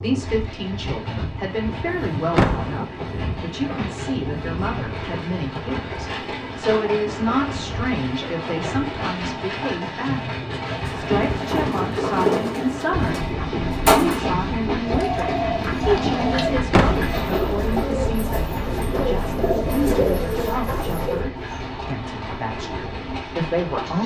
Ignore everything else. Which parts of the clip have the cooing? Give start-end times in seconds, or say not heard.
10.7-21.2.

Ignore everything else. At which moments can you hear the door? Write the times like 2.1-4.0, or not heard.
2.4-2.8, 16.7-17.1.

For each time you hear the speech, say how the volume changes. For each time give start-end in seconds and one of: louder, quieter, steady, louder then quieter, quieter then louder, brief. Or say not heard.
0.0-24.0 steady.